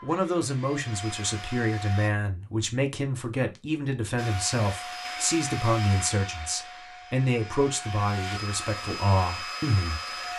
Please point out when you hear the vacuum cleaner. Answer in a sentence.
You can hear the vacuum cleaner from 0.0 to 2.1 s and from 4.2 to 10.3 s.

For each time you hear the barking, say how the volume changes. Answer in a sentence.
You can't hear the barking here.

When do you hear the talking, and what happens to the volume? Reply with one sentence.
You can hear the talking from 0.0 to 10.3 s, at a steady volume.